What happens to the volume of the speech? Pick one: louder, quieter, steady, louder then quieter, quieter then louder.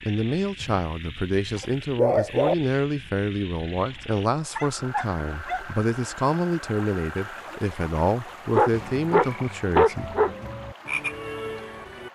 steady.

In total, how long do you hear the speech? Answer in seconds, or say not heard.
10 s.